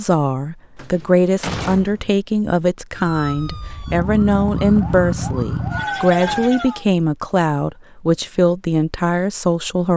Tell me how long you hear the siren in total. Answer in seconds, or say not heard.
4 s.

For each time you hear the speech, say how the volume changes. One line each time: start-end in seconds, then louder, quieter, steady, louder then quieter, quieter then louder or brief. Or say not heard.
0.0-9.9 steady.